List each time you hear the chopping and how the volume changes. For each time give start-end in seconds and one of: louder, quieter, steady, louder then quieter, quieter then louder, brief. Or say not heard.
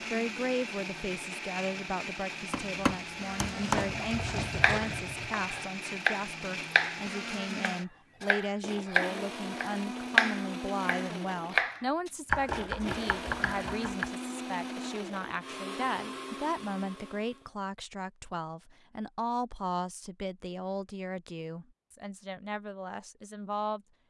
2.5-3.9 brief
4.6-14.1 louder then quieter.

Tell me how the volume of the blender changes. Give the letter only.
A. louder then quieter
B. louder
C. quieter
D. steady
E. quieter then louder
D.